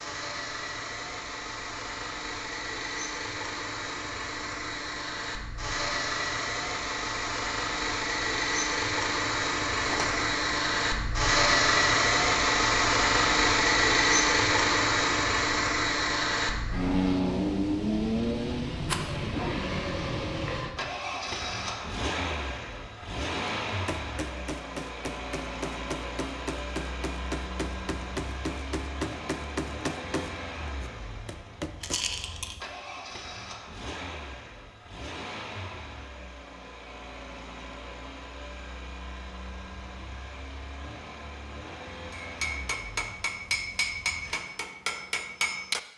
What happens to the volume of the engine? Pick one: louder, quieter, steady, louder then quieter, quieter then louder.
louder then quieter.